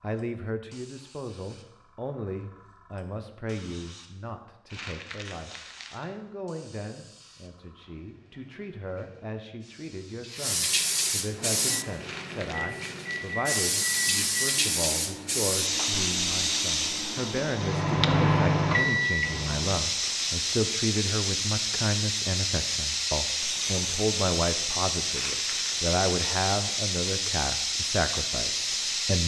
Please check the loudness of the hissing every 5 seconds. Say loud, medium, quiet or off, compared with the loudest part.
quiet, quiet, loud, loud, loud, loud.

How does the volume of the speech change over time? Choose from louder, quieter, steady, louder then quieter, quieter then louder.
louder.